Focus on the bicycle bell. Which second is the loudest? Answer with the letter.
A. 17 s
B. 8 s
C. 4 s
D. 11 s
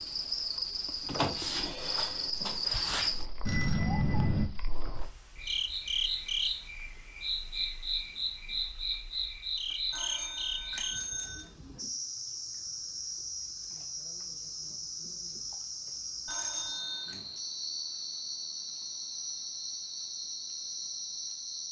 C.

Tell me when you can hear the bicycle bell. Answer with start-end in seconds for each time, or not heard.
3.5-4.5, 9.9-11.4, 16.2-17.2.